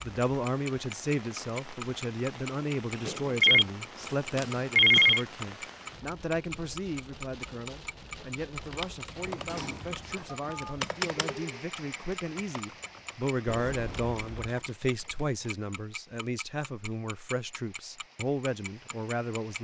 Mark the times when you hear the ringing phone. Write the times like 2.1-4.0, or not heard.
3.4-5.2, 10.2-11.6.